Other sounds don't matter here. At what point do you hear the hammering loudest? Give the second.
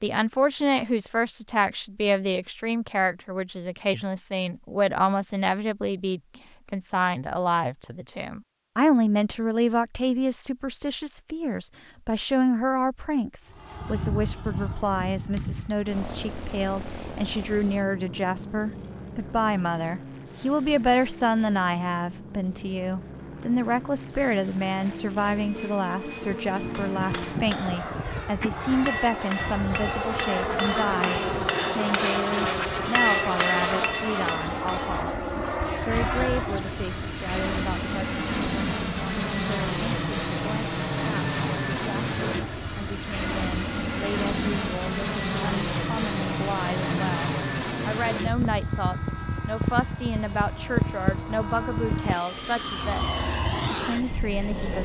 33 s.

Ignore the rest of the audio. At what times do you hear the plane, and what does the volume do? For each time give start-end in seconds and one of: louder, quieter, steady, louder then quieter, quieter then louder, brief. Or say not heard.
13.4-54.7 louder.